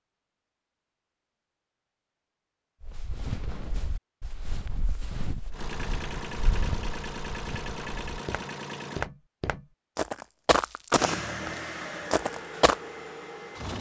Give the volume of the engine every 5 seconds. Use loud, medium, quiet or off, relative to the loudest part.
off, loud, loud.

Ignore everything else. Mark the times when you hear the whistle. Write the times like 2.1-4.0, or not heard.
not heard.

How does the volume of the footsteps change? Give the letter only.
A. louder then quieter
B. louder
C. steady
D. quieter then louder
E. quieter
B.